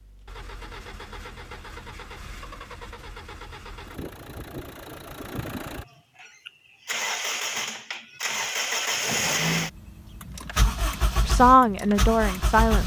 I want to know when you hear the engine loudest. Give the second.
9 s.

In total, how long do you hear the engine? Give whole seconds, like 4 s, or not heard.
13 s.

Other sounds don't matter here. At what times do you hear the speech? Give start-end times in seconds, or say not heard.
11.2-12.8.